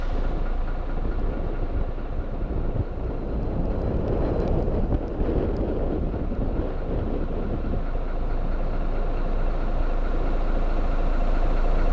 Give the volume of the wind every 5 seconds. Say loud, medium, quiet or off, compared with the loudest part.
loud, loud, medium.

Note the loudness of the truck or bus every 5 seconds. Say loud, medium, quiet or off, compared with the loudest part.
medium, medium, loud.